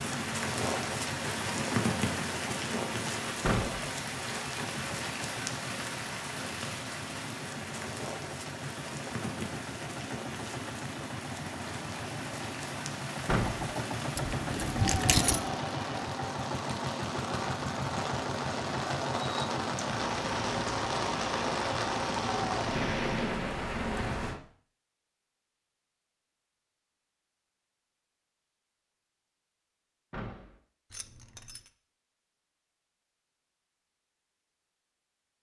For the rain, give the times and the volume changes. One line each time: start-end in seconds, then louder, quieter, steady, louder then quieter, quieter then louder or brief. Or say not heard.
0.0-24.4 quieter then louder.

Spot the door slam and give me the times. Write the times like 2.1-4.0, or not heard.
3.4-3.9, 13.2-13.8, 30.1-30.6.